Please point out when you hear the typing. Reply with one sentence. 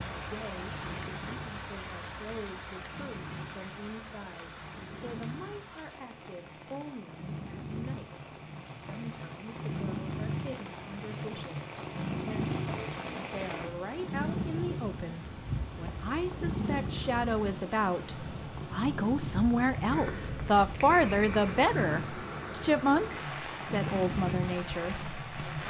You can't hear the typing here.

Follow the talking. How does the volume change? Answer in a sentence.
The loudness of the talking goes up.